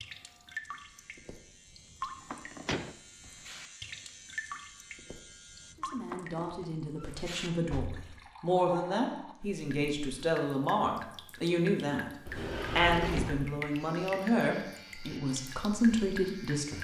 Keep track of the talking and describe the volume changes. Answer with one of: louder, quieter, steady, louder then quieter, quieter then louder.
louder.